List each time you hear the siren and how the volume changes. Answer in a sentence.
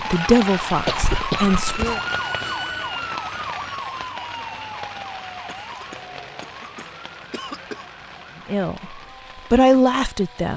The siren can be heard from 0.0 to 10.5 s, getting quieter.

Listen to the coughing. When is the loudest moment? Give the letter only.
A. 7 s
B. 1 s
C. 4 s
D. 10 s
B.